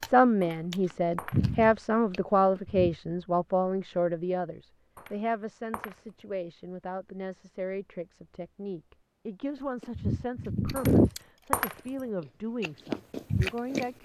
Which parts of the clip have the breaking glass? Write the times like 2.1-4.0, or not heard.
0.4-1.6, 5.0-6.2, 10.8-12.0.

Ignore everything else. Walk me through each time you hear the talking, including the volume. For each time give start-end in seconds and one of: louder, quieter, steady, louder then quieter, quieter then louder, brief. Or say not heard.
0.0-14.0 quieter.